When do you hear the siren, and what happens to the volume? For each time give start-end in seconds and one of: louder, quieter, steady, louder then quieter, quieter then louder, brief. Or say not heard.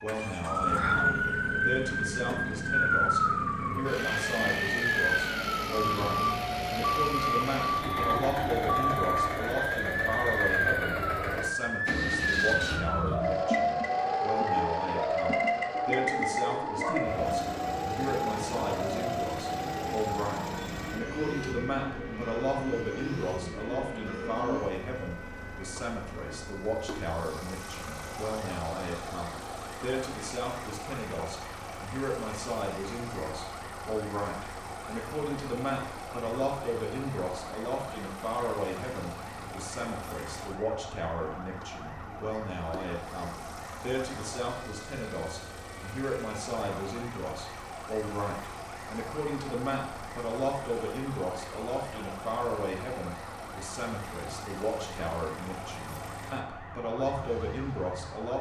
0.0-58.3 quieter.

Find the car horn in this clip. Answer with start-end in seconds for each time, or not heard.
not heard.